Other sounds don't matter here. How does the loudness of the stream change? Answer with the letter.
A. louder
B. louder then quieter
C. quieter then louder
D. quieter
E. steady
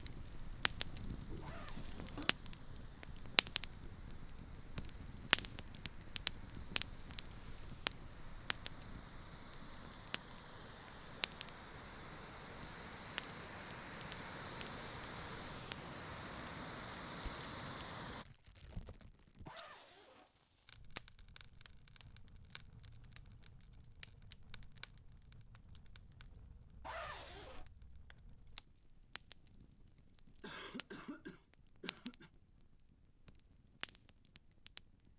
A.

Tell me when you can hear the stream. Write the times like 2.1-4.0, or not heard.
0.0-18.2.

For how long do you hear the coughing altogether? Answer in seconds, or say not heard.
3 s.